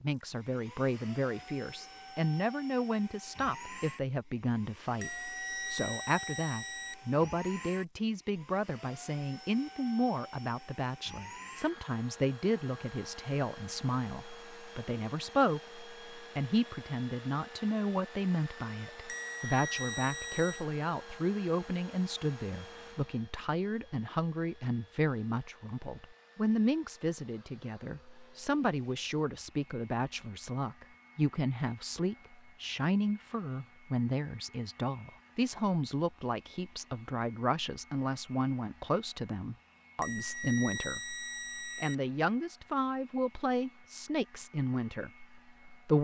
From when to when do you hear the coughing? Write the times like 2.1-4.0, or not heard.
not heard.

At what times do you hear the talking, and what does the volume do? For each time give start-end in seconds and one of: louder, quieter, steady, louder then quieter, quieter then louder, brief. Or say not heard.
0.0-45.9 steady.